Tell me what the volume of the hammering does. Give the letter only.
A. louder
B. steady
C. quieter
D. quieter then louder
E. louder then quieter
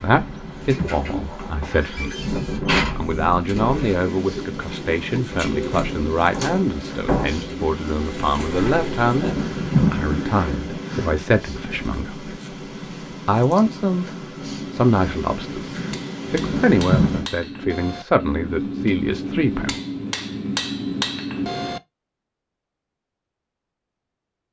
A.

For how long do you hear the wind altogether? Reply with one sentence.
You can hear the wind for 17 seconds altogether.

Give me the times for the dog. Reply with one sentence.
You can't hear the dog here.